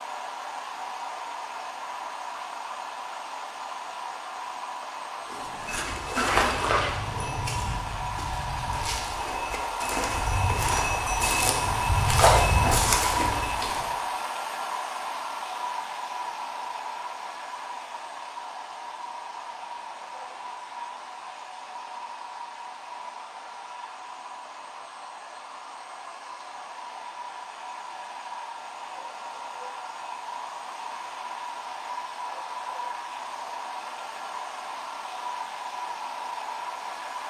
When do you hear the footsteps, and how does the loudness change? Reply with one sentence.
The footsteps can be heard from 5.3 to 13.9 s, getting quieter then louder.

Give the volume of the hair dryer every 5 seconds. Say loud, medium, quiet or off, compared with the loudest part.
medium, medium, loud, medium, medium, medium, medium, medium.